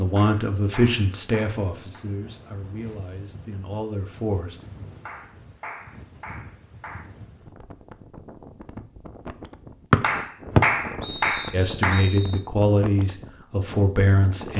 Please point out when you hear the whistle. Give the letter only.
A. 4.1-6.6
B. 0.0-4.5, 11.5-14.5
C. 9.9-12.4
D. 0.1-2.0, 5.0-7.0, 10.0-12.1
C.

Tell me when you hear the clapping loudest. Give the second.
11 s.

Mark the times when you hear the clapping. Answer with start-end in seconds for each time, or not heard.
0.1-2.0, 5.0-7.0, 10.0-12.1.